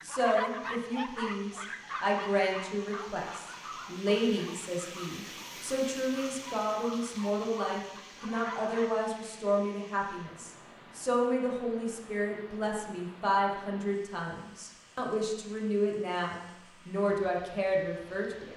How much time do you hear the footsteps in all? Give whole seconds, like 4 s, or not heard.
not heard.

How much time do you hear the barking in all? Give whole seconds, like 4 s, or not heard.
9 s.